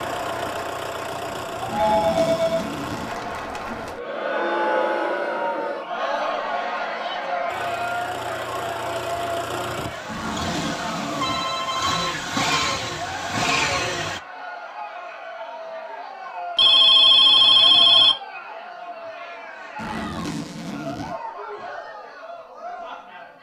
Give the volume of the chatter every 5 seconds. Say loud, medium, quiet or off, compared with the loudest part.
loud, loud, medium, medium, medium.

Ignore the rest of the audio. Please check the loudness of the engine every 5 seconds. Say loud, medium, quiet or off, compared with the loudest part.
medium, medium, loud, off, off.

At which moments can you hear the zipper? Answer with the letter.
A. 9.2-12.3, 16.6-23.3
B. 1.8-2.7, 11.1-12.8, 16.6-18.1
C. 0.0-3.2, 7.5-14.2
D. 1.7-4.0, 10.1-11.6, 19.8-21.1
D.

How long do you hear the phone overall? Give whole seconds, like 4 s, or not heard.
4 s.